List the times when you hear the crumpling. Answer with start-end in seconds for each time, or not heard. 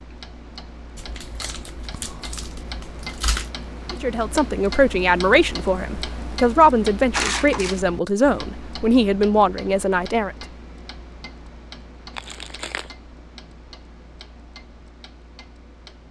0.9-3.5, 7.1-7.8, 12.2-12.9.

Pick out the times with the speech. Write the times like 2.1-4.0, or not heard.
3.9-10.3.